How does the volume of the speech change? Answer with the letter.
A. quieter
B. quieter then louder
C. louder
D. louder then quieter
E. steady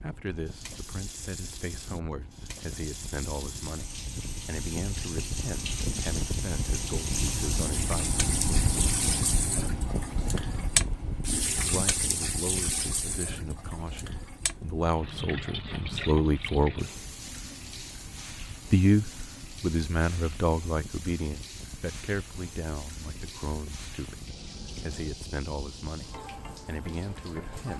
D.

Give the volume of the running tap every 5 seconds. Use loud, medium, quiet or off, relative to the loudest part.
medium, loud, loud, medium, medium, medium.